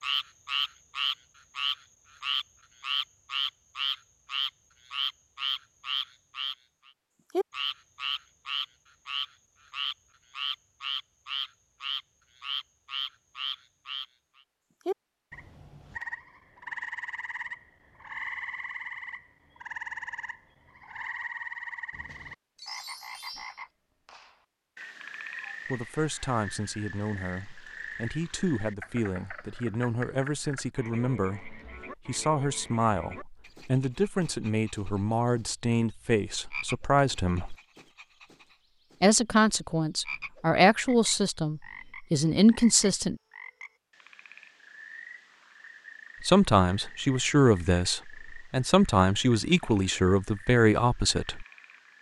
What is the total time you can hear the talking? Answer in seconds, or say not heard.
21 s.